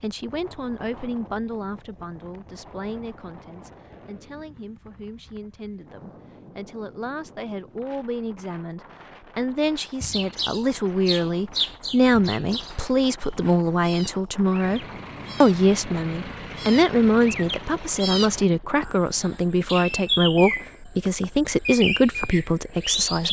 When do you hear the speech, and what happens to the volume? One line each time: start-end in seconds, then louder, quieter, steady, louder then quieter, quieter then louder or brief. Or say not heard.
0.0-23.2 louder.